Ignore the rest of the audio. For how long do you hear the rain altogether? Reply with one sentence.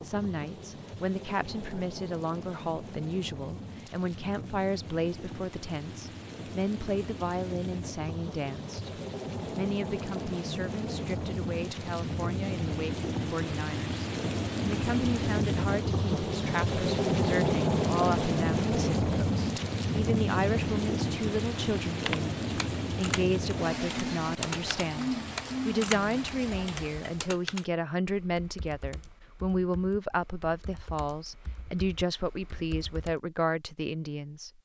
You can hear the rain for 27 seconds altogether.